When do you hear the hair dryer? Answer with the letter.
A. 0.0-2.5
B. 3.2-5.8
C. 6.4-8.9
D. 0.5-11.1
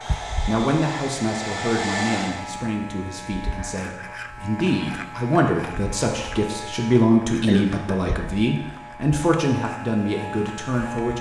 A.